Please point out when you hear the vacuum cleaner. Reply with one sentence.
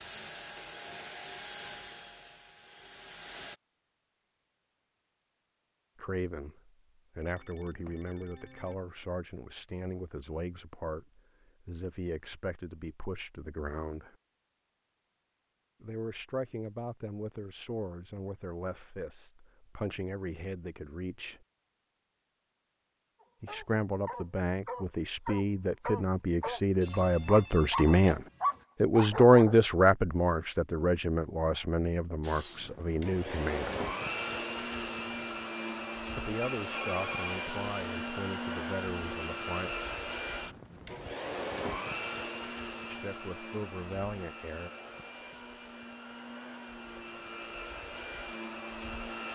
The vacuum cleaner can be heard from 0.0 to 3.6 s and from 32.2 to 49.2 s.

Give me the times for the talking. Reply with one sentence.
The talking can be heard from 6.0 to 14.2 s, from 15.8 to 21.4 s, from 23.4 to 28.2 s, from 28.8 to 33.9 s, from 36.1 to 39.9 s and from 42.9 to 44.7 s.